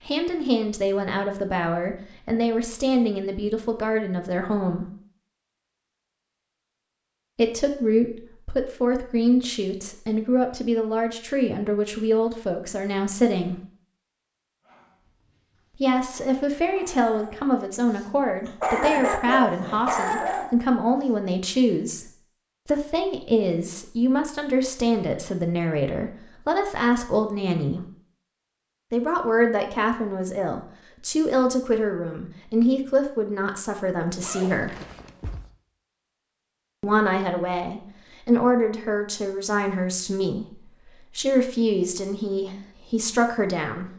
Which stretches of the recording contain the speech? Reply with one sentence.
You can hear the speech from 0.1 to 4.9 s, from 7.3 to 13.6 s, from 15.8 to 27.8 s, from 28.9 to 34.8 s and from 36.8 to 43.9 s.